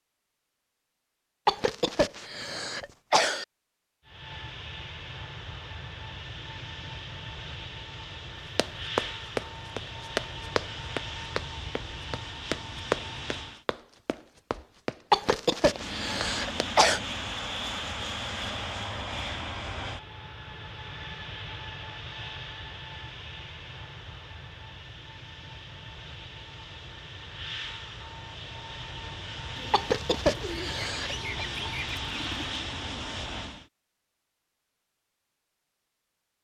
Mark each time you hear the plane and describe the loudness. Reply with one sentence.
You can hear the plane from 4.0 to 13.7 s, at a steady volume; and from 15.7 to 33.6 s, getting quieter then louder.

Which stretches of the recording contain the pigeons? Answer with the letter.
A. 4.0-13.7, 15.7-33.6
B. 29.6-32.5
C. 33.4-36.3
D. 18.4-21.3
B.